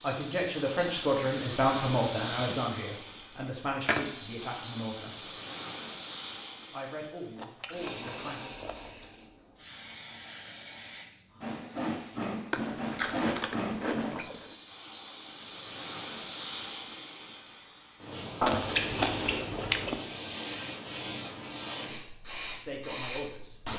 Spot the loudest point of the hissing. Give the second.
23 s.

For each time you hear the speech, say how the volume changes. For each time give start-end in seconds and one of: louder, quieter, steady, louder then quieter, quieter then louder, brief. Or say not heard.
0.0-5.3 quieter
6.7-8.5 brief
22.6-23.7 brief.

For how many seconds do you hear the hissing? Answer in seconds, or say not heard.
24 s.